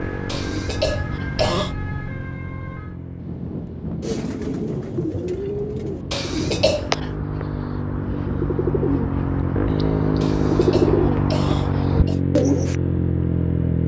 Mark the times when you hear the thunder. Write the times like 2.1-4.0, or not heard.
3.1-6.8.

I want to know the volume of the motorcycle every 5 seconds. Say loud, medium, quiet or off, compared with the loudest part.
medium, medium, loud.